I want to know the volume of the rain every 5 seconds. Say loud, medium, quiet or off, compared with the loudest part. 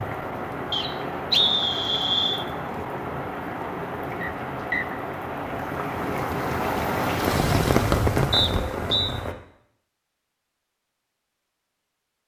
medium, loud, off.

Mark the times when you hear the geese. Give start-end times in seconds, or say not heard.
not heard.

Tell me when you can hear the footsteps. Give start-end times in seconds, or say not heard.
not heard.